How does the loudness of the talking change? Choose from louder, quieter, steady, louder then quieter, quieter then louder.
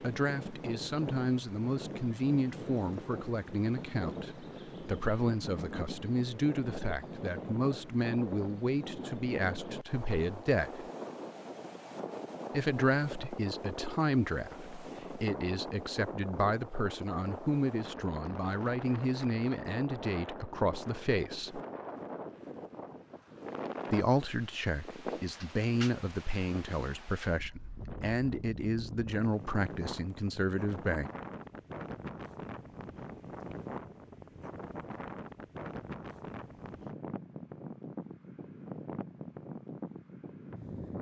steady.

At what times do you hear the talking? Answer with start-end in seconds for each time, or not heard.
0.0-10.8, 12.5-21.6, 23.9-31.1.